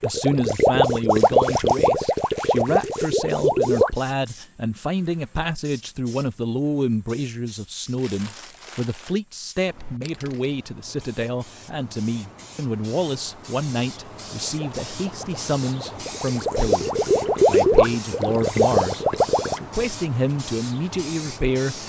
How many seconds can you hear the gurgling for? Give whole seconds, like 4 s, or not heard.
9 s.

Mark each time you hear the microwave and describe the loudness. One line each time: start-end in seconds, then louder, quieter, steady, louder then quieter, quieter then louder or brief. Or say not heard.
not heard.